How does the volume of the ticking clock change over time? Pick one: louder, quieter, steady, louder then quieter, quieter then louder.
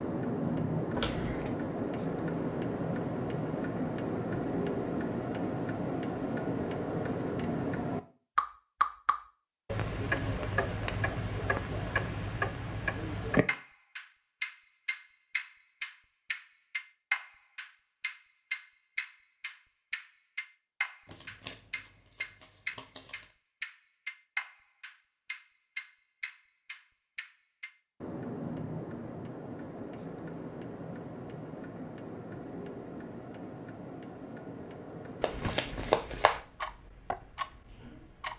quieter.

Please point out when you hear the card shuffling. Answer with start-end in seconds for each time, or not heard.
0.9-1.6, 21.1-23.3, 35.2-36.4.